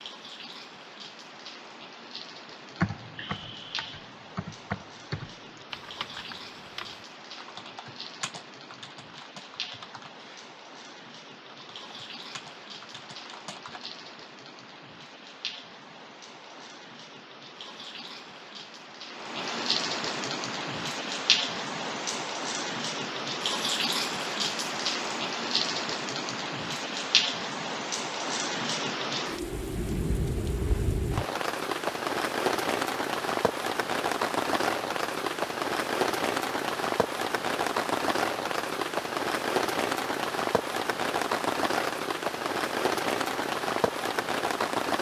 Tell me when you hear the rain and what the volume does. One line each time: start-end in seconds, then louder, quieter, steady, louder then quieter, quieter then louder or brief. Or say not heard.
0.0-44.9 louder.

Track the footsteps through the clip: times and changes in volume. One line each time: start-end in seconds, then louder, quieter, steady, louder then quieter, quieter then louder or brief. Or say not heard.
not heard.